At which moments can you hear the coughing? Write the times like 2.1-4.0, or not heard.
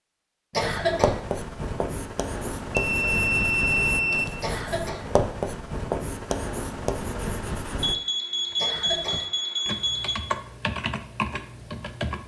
0.5-1.1, 4.4-5.0, 8.6-9.2.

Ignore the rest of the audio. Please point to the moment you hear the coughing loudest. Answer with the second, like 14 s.
1 s.